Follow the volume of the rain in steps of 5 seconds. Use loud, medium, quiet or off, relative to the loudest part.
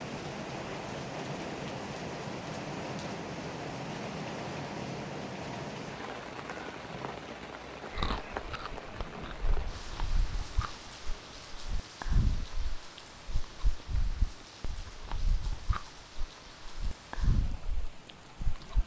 loud, loud, medium, quiet.